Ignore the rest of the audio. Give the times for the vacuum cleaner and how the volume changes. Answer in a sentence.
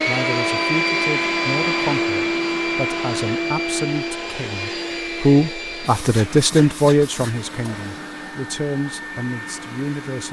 You can hear the vacuum cleaner from 0.0 to 10.2 s, getting quieter.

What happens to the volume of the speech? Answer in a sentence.
The volume of the speech goes up, then down.